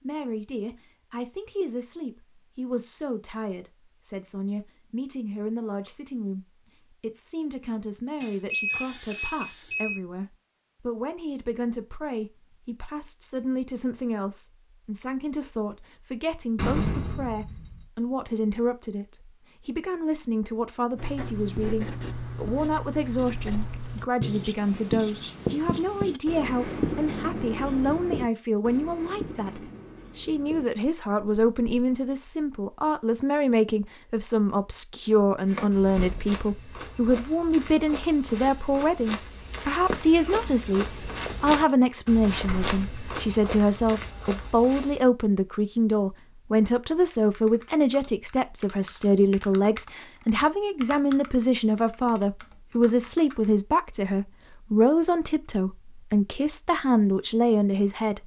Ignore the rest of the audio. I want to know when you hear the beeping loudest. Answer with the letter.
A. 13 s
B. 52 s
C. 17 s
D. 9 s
D.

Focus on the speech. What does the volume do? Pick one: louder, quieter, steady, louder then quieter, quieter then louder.
louder.